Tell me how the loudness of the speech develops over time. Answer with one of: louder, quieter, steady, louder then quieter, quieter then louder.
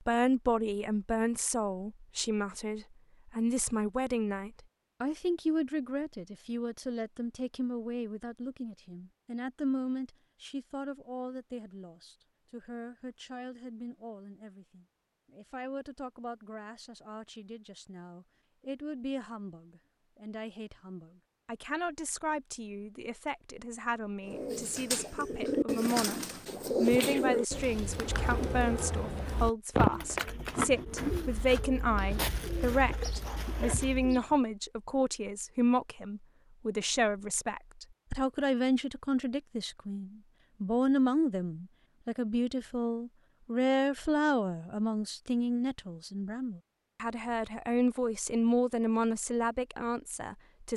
quieter then louder.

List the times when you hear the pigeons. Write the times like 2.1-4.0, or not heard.
24.2-34.4.